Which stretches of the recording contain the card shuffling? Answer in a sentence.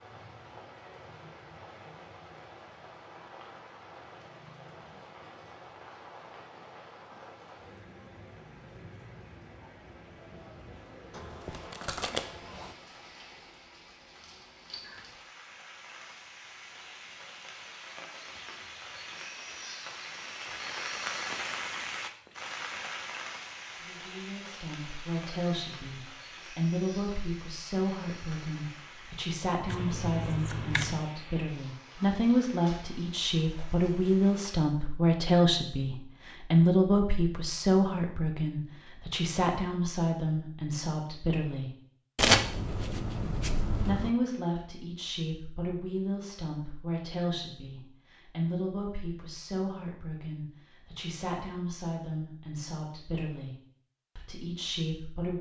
The card shuffling can be heard from 11.1 to 12.8 s, from 29.6 to 31.0 s and from 42.1 to 44.1 s.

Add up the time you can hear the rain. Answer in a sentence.
You can hear the rain for 35 seconds altogether.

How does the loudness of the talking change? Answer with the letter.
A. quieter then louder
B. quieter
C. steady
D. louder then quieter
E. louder
D.